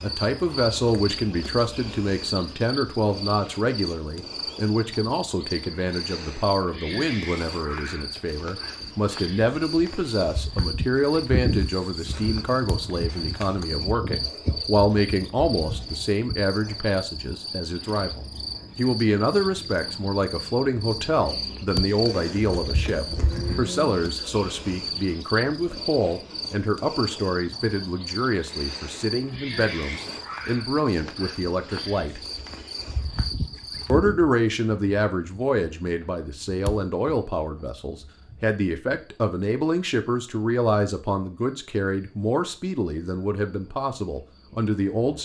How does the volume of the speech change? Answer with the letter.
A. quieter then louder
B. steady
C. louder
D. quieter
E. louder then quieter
B.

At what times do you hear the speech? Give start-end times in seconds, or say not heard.
0.0-32.2, 33.9-45.2.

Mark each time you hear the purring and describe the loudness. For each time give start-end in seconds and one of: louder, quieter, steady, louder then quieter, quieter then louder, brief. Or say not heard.
not heard.